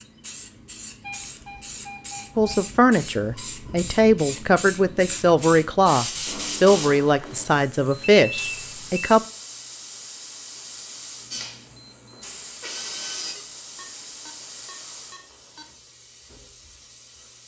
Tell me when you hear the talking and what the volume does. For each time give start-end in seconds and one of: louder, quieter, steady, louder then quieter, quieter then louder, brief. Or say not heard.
2.4-9.2 steady.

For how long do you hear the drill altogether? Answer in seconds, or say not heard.
2 s.